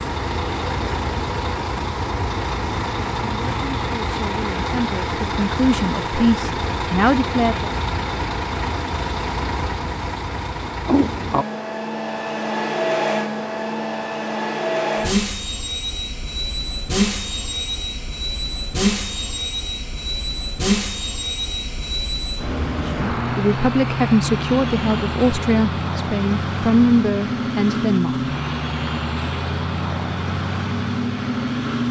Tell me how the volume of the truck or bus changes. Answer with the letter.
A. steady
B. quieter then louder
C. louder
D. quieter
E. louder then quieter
A.